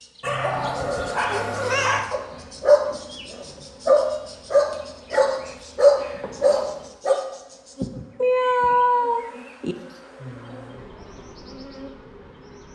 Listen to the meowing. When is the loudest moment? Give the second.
9 s.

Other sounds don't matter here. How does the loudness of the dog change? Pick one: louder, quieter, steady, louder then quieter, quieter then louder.
louder.